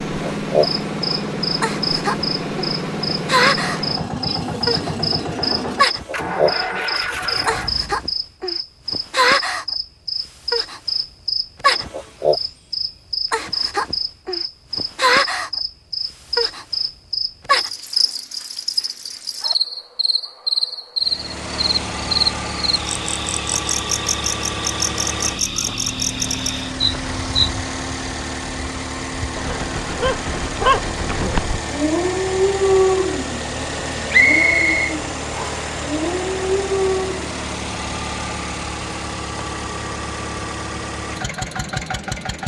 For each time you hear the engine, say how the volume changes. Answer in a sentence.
You can hear the engine from 0.0 to 8.1 s, at a steady volume; and from 21.0 to 42.4 s, at a steady volume.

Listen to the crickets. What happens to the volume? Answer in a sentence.
The loudness of the crickets stays about the same.